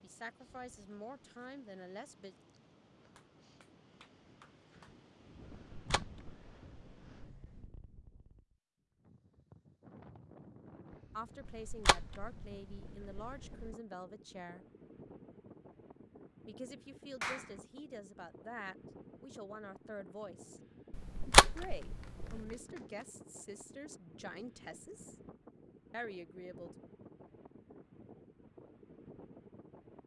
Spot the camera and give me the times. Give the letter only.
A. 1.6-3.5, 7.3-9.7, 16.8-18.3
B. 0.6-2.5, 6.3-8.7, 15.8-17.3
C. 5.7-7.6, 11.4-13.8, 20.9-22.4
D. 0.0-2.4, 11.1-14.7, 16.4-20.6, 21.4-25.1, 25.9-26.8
C.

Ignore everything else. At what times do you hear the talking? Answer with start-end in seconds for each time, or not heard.
0.0-2.4, 11.1-14.7, 16.4-20.6, 21.4-25.1, 25.9-26.8.